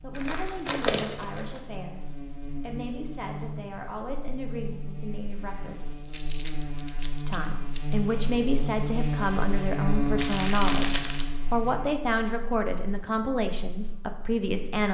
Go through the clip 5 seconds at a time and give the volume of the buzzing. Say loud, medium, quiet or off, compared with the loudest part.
medium, loud, loud.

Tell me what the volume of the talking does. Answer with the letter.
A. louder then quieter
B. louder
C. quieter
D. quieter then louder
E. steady
B.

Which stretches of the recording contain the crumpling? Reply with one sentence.
The crumpling can be heard from 0.1 to 1.6 s, from 6.0 to 8.0 s and from 10.2 to 11.2 s.